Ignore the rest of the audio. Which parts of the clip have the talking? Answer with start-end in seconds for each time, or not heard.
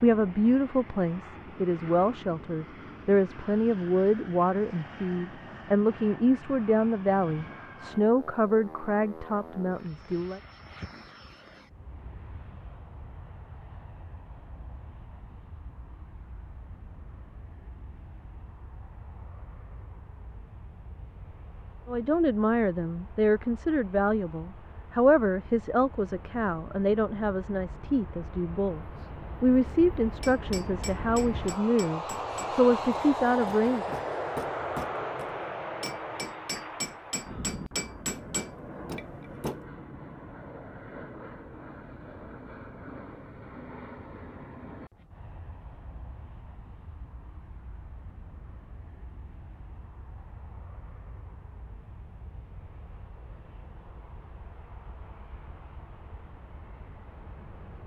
0.0-10.4, 21.9-33.9.